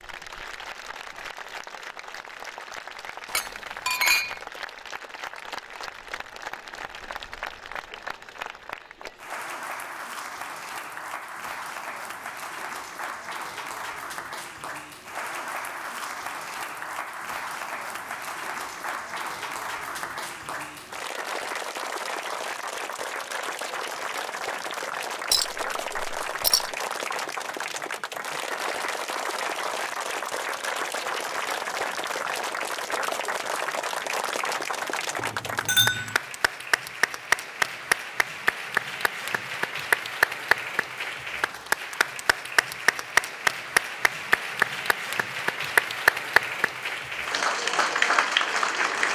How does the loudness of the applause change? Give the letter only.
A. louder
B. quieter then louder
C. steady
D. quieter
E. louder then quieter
A.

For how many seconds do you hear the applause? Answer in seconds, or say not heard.
49 s.